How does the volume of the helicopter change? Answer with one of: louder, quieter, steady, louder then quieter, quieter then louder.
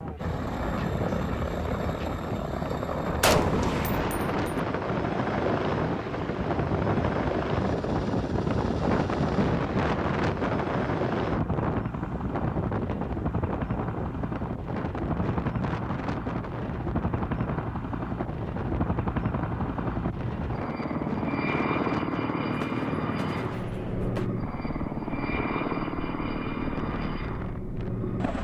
steady.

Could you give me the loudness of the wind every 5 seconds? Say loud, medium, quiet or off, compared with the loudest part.
medium, loud, loud, medium, medium, quiet.